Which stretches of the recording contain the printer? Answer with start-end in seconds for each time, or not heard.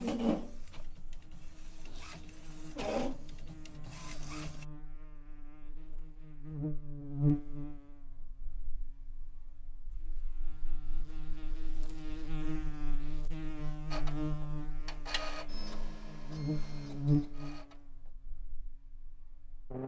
0.0-4.7, 13.9-18.1.